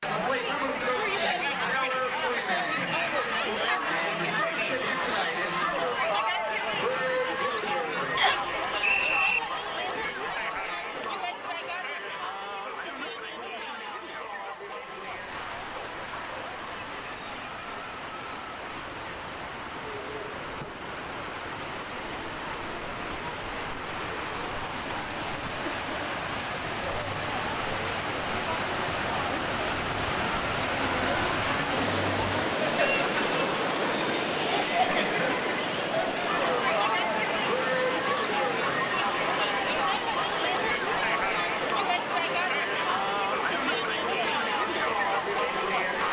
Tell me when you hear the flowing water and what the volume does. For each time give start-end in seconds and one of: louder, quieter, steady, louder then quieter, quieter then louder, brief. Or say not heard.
14.8-46.0 louder then quieter.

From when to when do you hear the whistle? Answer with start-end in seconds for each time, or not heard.
8.2-9.4.